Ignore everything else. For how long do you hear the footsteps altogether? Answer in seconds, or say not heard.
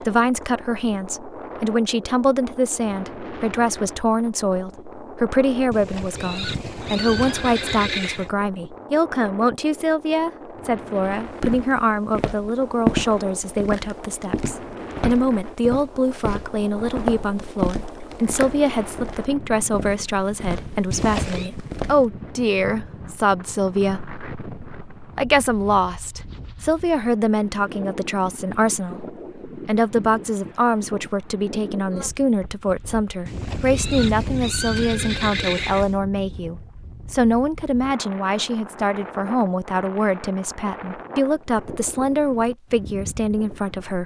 11 s.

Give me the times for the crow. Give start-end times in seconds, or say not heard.
not heard.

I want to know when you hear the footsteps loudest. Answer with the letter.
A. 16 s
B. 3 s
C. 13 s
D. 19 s
C.